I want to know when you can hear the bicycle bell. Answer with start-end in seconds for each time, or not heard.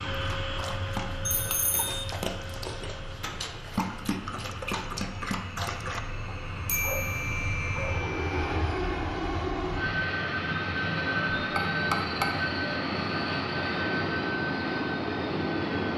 1.2-2.0, 6.7-8.3, 11.6-12.5.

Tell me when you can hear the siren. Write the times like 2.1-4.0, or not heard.
not heard.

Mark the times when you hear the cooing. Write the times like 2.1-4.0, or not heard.
not heard.